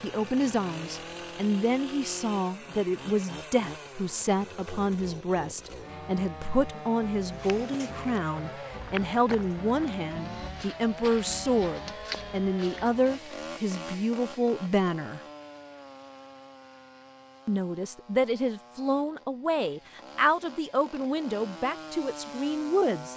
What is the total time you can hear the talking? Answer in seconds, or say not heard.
21 s.